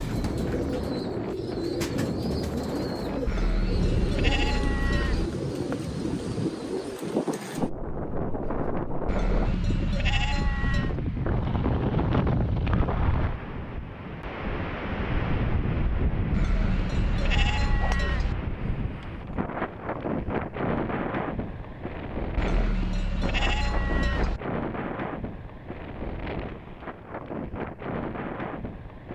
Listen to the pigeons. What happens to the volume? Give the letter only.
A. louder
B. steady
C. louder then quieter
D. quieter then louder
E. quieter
B.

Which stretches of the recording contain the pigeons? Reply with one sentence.
The pigeons can be heard from 0.0 to 7.0 s.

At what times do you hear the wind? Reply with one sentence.
You can hear the wind from 0.0 to 29.0 s.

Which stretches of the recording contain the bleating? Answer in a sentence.
You can hear the bleating from 3.2 to 5.3 s, from 9.1 to 10.9 s, from 16.3 to 18.4 s and from 22.4 to 24.4 s.